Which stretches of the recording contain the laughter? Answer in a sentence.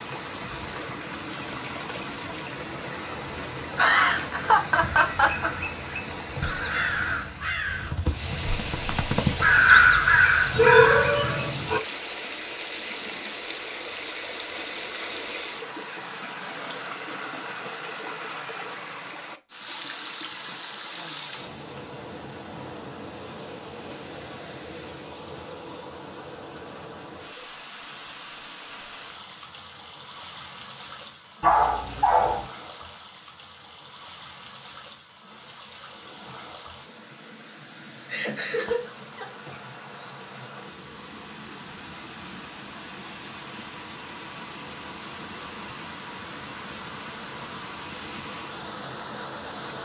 The laughter can be heard from 3.8 to 5.5 s and from 38.0 to 39.2 s.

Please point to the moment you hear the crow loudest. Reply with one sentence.
The loudest moment of the crow is at 10 seconds.